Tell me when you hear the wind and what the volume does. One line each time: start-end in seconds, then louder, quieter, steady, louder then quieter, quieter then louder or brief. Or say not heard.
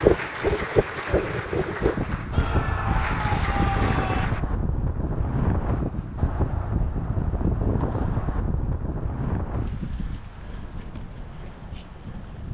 0.0-12.5 quieter.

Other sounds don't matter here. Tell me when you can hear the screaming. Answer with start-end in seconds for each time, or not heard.
2.3-4.3.